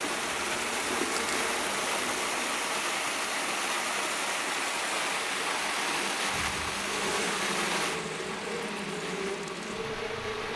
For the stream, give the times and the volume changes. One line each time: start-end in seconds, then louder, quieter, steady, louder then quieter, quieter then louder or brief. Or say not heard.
0.0-10.5 quieter.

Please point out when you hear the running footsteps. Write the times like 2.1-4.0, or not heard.
not heard.